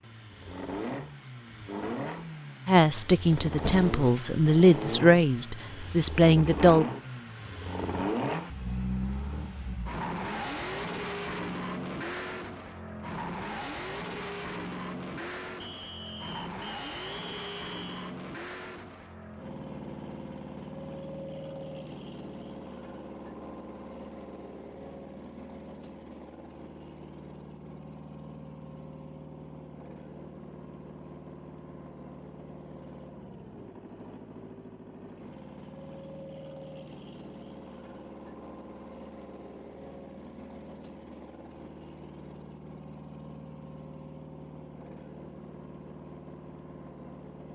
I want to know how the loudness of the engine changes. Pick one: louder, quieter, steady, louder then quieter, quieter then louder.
quieter.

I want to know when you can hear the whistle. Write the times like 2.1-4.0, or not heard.
15.6-18.1.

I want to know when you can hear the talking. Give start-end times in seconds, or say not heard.
2.6-6.8.